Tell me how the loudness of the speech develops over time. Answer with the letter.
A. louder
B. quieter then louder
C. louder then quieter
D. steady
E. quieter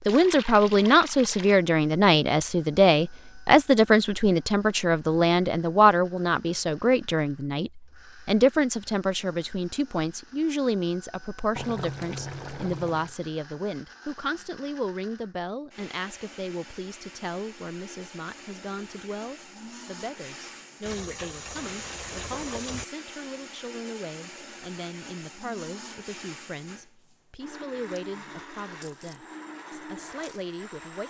E.